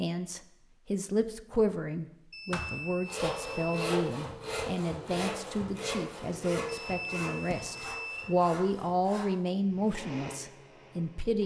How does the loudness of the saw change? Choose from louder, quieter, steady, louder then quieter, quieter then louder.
quieter.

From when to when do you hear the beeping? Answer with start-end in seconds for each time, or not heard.
2.3-3.8, 6.7-8.3.